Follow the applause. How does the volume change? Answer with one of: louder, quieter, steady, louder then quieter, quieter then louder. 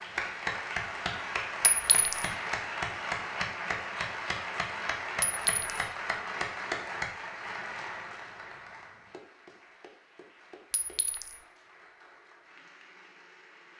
quieter.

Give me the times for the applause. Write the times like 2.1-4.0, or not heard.
0.0-13.7.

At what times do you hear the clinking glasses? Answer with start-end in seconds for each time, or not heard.
1.6-2.3, 5.2-5.8, 10.7-11.4.